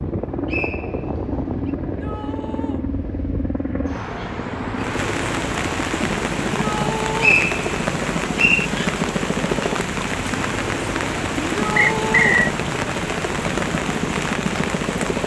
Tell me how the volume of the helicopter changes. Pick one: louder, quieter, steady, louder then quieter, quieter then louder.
steady.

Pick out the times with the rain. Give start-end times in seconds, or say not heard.
4.8-15.2.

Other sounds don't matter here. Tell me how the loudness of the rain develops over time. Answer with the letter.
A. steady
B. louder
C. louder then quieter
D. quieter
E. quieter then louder
A.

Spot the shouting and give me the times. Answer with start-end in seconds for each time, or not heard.
1.8-2.9, 6.6-7.4, 11.6-12.4.